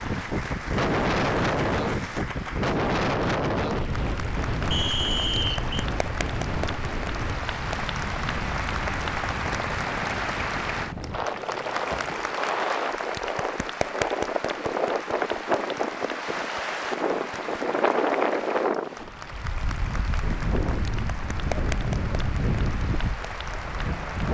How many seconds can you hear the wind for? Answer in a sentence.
You can hear the wind for 24 seconds altogether.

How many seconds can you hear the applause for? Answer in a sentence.
You can hear the applause for 24 seconds altogether.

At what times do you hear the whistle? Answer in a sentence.
The whistle can be heard from 4.7 to 5.8 s.